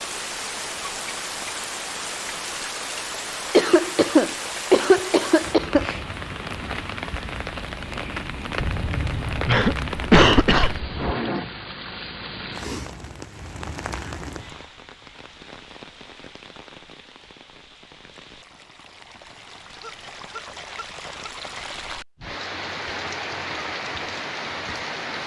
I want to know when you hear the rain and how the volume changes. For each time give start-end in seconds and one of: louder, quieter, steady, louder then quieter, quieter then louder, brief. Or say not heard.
0.0-25.2 quieter then louder.